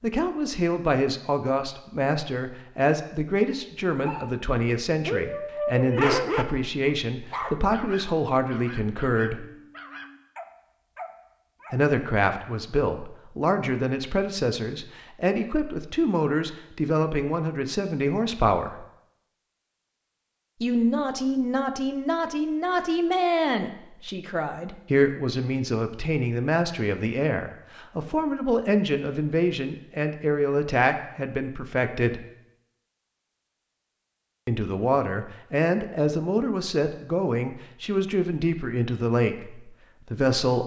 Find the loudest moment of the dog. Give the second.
6 s.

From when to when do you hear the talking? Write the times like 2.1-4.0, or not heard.
0.0-9.4, 11.7-18.9, 20.6-32.2, 34.5-40.6.